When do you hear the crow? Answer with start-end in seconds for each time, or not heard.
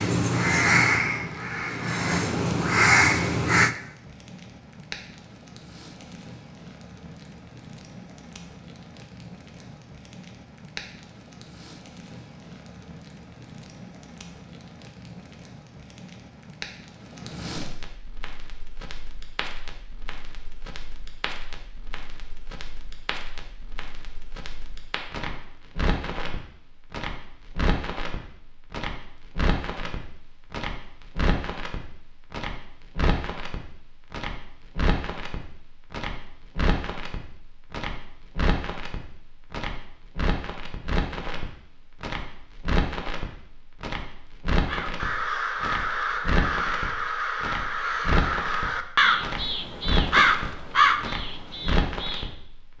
0.0-3.7, 44.6-52.3.